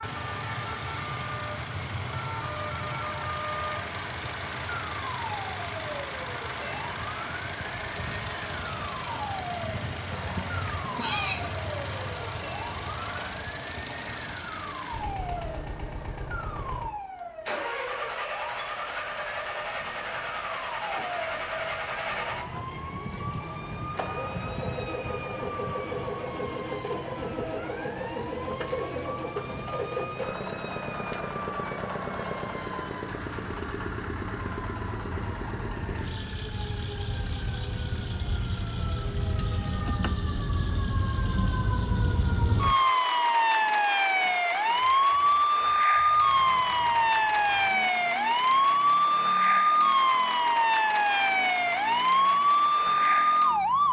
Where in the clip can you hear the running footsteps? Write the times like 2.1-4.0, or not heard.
not heard.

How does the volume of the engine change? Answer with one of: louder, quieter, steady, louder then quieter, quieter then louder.
quieter.